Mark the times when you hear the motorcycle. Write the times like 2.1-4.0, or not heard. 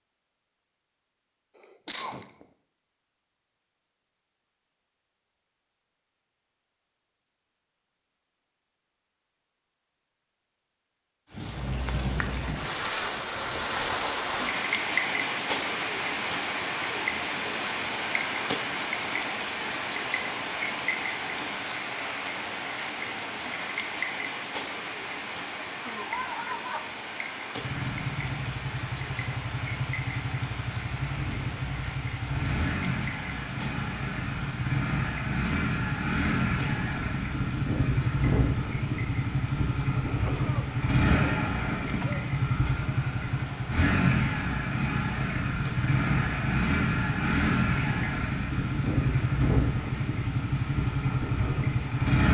27.6-52.2.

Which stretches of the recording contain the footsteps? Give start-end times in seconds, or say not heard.
not heard.